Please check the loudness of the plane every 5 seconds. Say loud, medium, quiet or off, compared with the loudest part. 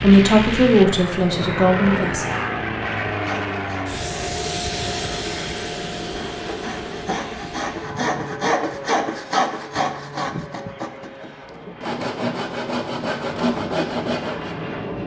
loud, medium, medium.